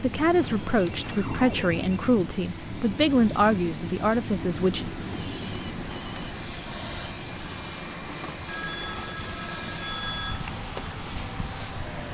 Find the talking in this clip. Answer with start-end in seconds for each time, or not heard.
0.0-4.8.